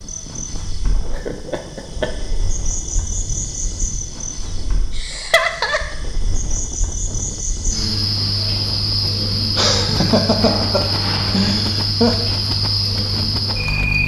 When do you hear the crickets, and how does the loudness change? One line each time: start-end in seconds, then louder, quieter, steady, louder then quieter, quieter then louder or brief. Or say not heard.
0.0-14.0 louder.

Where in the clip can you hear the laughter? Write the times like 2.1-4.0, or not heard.
1.1-2.1, 4.9-5.8, 9.6-12.2.